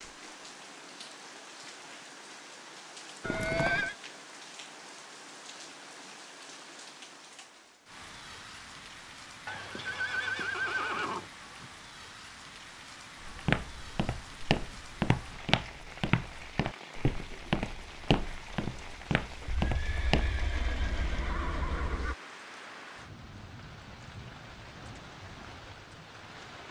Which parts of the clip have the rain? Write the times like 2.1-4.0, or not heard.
0.0-26.6.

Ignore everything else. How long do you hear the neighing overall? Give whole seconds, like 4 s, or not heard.
5 s.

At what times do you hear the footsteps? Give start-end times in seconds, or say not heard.
13.2-20.4.